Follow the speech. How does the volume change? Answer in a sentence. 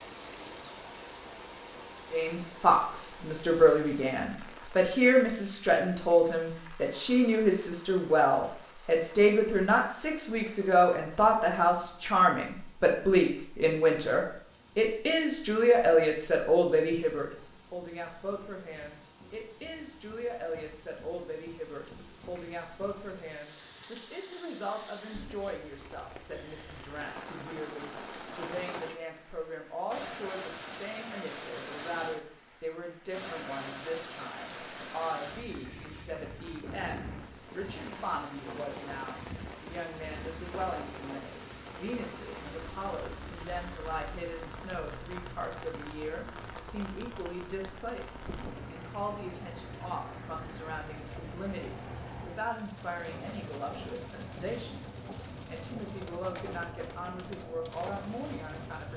The loudness of the speech goes down.